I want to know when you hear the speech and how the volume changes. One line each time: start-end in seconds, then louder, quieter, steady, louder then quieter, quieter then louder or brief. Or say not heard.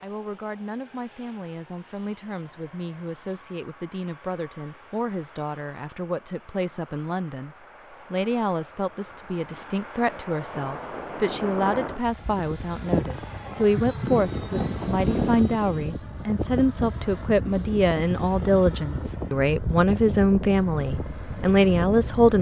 0.0-22.3 louder.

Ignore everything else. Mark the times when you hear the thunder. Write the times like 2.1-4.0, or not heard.
14.4-15.3.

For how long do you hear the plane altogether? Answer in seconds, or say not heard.
22 s.